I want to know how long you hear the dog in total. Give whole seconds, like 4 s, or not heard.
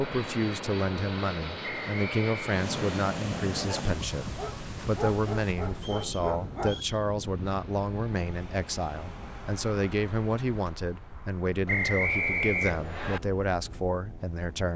3 s.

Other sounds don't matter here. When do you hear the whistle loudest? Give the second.
12 s.